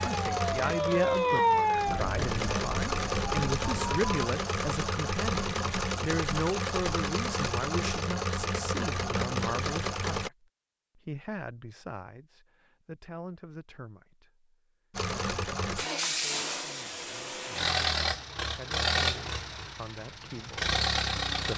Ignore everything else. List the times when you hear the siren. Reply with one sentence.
The siren can be heard from 0.0 to 4.3 s.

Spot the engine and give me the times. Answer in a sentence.
The engine can be heard from 0.0 to 10.3 s and from 14.9 to 21.5 s.